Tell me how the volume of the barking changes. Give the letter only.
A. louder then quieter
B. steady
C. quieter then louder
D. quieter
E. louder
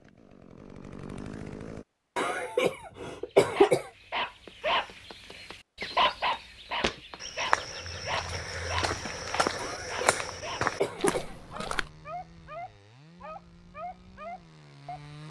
D.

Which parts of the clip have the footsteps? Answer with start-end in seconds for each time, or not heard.
5.9-11.9.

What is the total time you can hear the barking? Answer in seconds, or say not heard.
12 s.